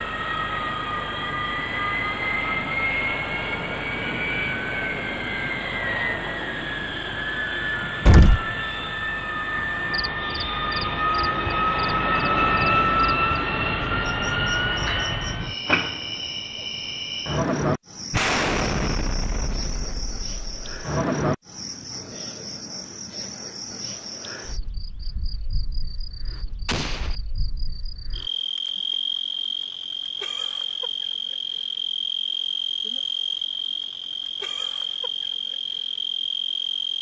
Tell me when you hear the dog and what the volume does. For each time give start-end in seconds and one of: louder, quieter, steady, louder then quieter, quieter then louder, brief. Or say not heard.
not heard.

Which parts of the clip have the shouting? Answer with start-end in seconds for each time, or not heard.
not heard.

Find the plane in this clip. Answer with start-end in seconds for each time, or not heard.
0.0-15.6.